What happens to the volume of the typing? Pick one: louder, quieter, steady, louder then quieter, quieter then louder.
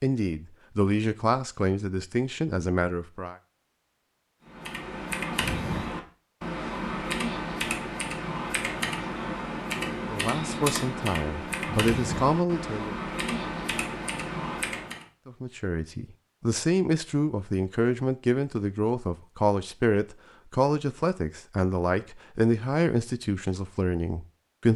steady.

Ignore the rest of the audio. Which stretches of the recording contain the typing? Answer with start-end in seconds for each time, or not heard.
4.5-15.1.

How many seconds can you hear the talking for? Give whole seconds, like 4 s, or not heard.
16 s.